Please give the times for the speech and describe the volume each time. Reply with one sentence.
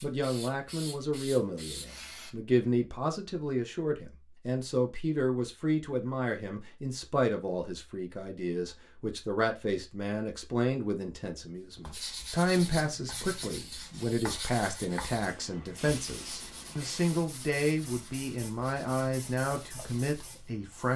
You can hear the speech from 0.0 to 20.9 s, at a steady volume.